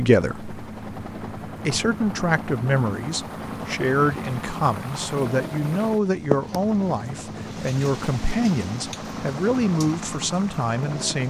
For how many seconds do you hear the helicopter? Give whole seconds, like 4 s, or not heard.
11 s.